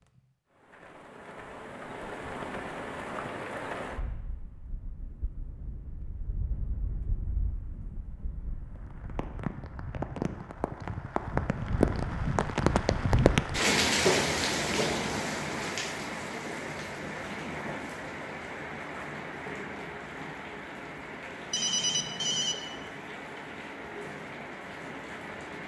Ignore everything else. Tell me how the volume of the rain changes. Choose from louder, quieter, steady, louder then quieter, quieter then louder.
louder then quieter.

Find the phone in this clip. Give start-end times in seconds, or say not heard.
21.5-22.6.